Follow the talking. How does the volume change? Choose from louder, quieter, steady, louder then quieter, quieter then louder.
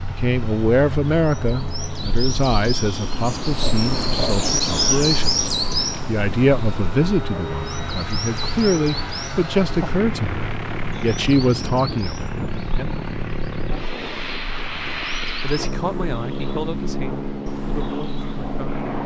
quieter.